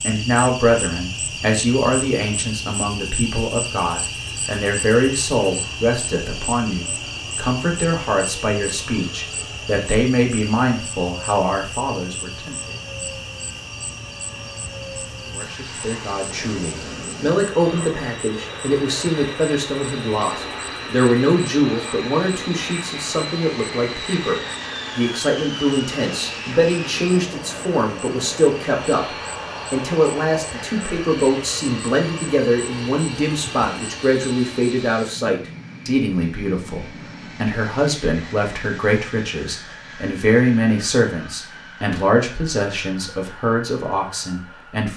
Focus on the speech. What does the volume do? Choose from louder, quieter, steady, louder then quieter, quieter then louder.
steady.